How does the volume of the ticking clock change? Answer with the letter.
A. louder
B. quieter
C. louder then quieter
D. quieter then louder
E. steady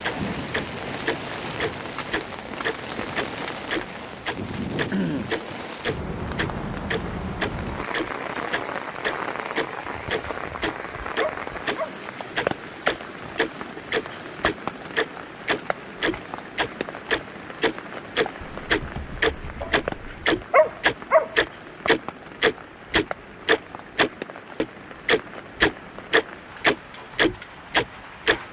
A.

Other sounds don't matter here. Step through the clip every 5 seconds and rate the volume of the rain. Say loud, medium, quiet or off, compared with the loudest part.
loud, loud, loud, medium, medium, medium.